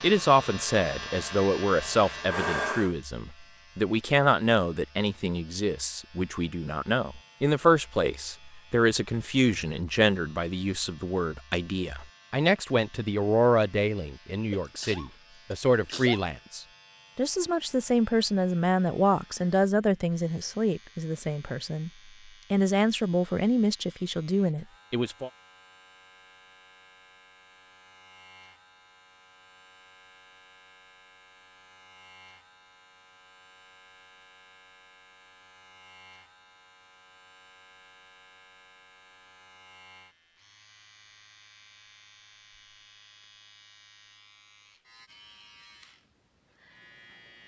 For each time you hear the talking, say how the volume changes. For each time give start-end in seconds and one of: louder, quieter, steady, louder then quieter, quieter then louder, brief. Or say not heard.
0.0-21.9 steady
22.5-25.3 brief.